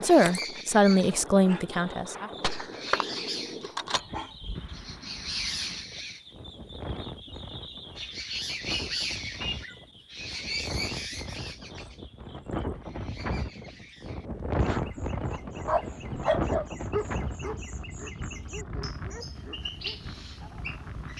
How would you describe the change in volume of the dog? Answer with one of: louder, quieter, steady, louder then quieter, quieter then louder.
quieter.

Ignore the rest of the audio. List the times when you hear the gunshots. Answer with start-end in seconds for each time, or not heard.
2.3-4.0.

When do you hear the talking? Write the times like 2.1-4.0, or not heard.
0.0-2.3.